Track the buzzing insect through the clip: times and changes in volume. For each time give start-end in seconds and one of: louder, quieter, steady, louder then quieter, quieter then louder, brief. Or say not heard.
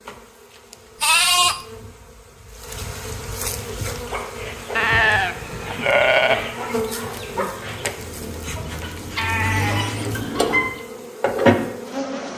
0.0-12.3 louder.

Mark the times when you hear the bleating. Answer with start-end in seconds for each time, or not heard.
1.0-1.6, 4.8-6.5, 9.2-10.2.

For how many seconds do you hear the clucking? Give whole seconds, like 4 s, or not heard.
7 s.